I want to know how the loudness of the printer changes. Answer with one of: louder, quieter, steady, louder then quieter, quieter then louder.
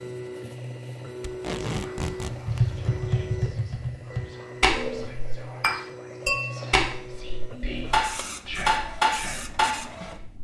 steady.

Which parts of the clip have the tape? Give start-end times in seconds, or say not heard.
1.2-2.4.